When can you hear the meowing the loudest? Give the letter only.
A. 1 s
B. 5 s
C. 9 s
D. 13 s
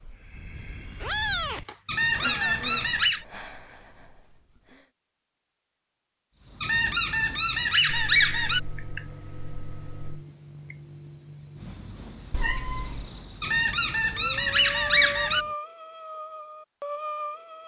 A.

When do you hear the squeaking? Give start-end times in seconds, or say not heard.
1.9-3.2, 6.6-8.6, 13.4-15.4.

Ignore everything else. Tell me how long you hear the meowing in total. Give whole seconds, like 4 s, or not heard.
5 s.